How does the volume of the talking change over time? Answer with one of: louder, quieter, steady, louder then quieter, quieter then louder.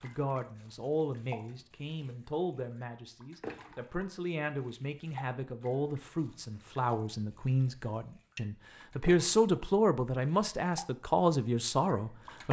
louder.